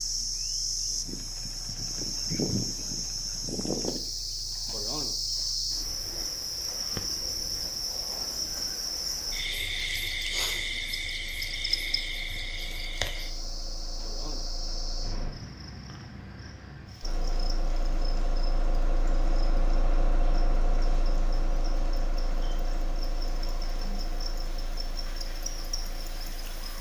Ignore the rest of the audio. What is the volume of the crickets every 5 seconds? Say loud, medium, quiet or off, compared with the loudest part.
loud, loud, loud, quiet, quiet, medium.